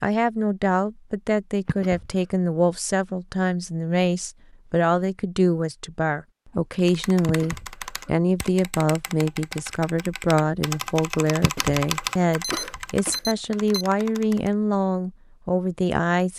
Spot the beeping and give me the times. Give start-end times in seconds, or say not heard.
12.4-13.8.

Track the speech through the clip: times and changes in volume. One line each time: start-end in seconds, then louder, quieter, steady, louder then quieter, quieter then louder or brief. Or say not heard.
0.0-16.3 steady.